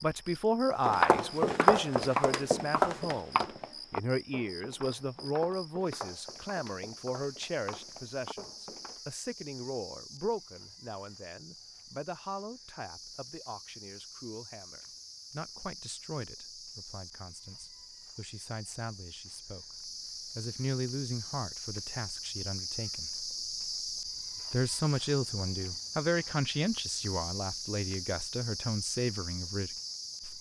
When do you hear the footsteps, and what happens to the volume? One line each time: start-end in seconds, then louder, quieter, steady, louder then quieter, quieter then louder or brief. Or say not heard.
0.8-9.0 quieter.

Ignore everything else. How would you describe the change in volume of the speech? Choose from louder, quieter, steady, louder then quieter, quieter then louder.
quieter then louder.